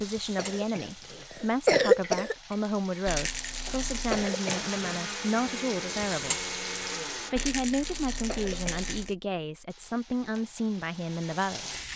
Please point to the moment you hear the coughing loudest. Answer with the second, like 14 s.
2 s.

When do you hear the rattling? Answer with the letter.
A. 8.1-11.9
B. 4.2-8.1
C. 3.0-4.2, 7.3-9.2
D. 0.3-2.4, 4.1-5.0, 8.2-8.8
C.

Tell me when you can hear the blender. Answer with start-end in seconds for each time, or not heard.
4.2-8.1.